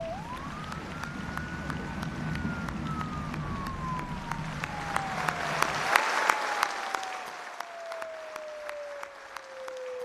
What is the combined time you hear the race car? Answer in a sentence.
The race car can't be heard in this clip.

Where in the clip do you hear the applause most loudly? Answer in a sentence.
The loudest moment of the applause is at 6 seconds.